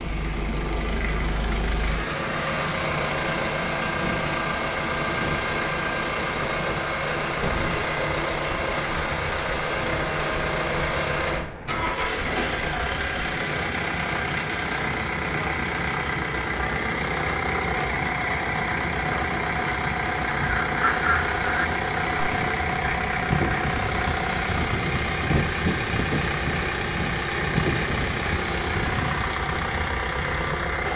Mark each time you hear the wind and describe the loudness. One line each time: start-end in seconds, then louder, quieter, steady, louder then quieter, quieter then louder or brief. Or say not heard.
0.0-30.9 steady.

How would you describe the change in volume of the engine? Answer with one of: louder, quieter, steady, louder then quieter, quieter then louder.
steady.